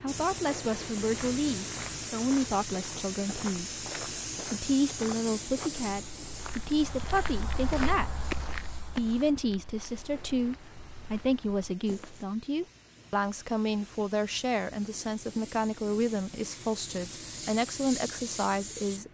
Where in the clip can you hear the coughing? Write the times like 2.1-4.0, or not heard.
not heard.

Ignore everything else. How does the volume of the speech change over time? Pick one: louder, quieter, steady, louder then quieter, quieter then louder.
steady.